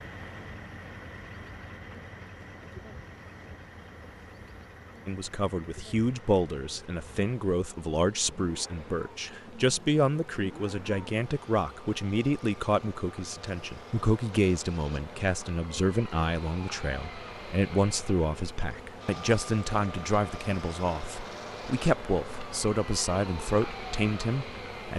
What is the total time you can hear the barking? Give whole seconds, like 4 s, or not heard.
not heard.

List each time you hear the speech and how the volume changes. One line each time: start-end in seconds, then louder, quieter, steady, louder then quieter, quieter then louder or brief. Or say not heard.
5.0-24.9 steady.